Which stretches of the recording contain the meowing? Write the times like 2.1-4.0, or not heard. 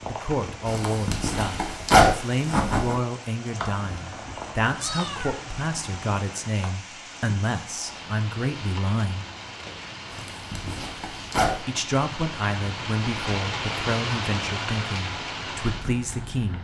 3.8-6.2.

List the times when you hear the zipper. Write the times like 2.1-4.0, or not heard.
0.7-3.0, 10.1-11.6.